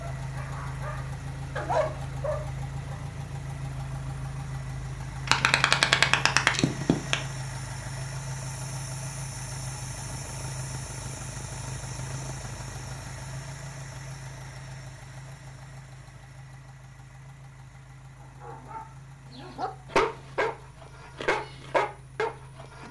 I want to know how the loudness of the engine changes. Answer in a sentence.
The loudness of the engine goes down.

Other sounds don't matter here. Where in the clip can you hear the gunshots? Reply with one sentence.
You can hear the gunshots from 5.2 to 7.2 s.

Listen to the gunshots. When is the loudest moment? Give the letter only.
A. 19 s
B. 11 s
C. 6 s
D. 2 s
C.